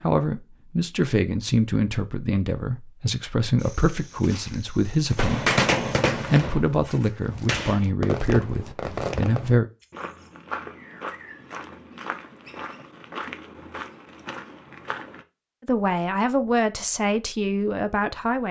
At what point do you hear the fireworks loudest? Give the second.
6 s.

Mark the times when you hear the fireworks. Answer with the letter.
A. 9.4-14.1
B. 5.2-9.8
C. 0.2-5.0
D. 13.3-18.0
B.